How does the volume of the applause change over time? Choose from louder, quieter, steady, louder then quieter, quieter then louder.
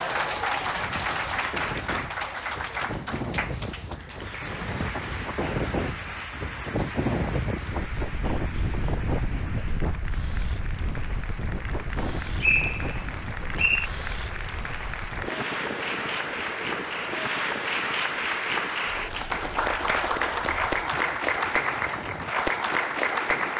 quieter then louder.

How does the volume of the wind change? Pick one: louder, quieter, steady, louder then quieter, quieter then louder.
louder then quieter.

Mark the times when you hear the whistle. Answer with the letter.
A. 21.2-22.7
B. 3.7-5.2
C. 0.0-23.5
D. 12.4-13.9
D.